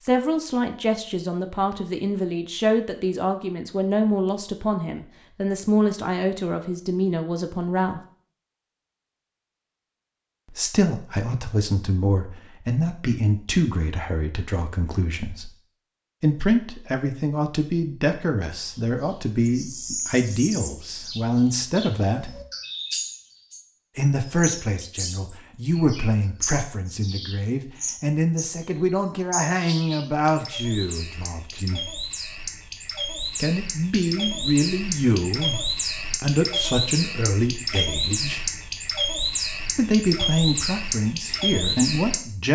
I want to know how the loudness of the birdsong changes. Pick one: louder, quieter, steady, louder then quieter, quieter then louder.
louder.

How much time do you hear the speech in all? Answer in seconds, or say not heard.
35 s.